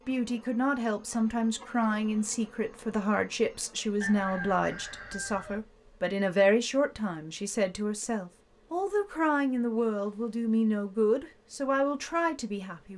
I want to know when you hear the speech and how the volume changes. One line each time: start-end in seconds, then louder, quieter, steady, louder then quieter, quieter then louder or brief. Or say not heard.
0.1-12.9 steady.